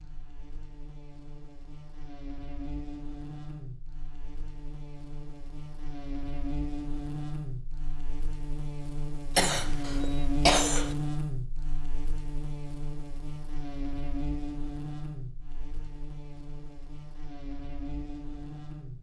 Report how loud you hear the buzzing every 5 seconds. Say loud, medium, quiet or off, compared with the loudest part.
medium, loud, loud, medium.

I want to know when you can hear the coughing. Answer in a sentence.
You can hear the coughing from 9.3 to 10.9 s.